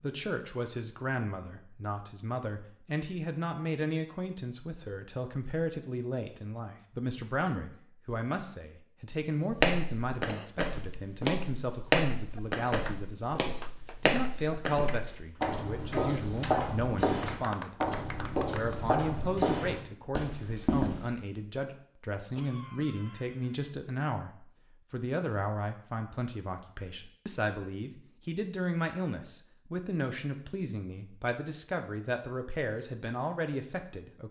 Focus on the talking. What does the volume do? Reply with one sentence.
The loudness of the talking stays about the same.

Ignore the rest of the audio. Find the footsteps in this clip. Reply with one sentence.
You can hear the footsteps from 9.5 to 21.1 s.